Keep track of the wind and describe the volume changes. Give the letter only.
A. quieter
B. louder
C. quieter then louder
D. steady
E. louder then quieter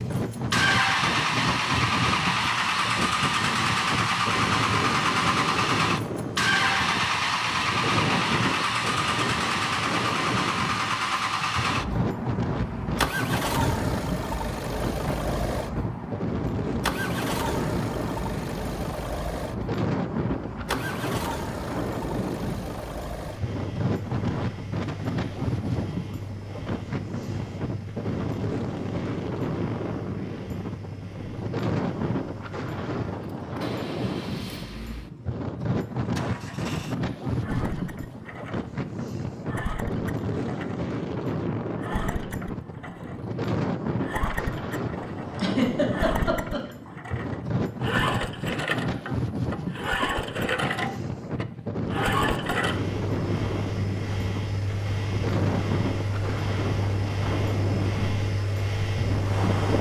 D.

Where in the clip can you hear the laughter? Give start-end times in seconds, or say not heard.
45.4-46.7.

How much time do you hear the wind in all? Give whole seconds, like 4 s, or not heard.
60 s.